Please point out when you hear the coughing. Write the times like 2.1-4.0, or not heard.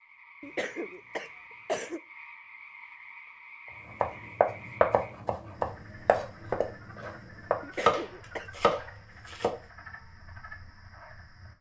0.4-2.0, 7.6-8.5.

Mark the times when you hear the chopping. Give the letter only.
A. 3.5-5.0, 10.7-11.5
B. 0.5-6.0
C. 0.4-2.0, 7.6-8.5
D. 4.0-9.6
D.